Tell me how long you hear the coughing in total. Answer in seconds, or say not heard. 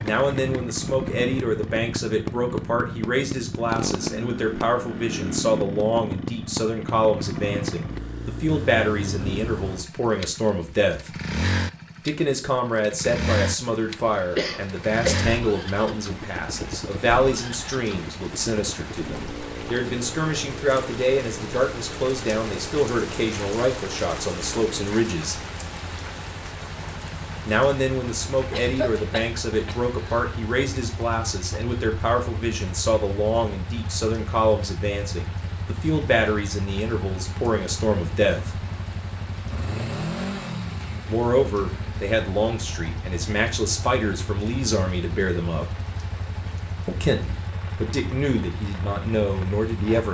3 s.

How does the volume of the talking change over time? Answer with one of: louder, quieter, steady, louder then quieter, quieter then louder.
steady.